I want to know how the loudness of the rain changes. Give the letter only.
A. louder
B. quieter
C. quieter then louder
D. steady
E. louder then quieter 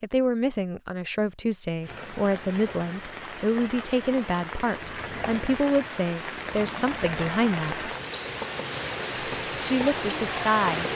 A.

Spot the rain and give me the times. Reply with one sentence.
The rain can be heard from 1.8 to 10.9 s.